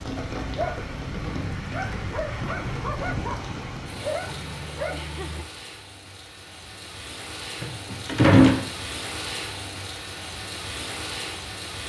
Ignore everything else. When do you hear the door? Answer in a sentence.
You can hear the door from 7.6 to 8.6 s.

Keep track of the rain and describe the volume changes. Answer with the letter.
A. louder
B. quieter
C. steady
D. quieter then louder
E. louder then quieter
D.